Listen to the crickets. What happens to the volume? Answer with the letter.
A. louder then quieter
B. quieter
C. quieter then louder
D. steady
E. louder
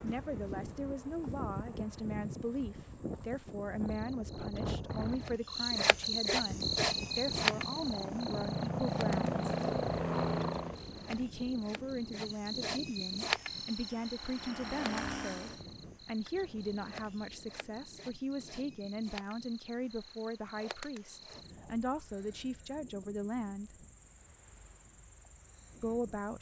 A.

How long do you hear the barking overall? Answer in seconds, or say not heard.
not heard.